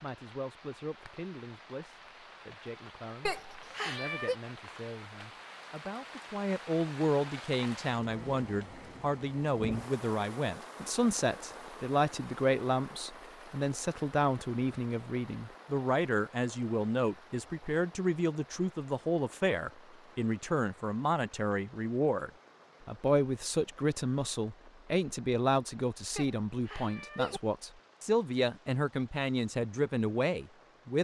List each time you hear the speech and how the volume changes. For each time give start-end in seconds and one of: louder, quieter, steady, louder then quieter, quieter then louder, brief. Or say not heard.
0.0-30.9 louder.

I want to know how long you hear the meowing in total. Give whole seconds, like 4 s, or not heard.
2 s.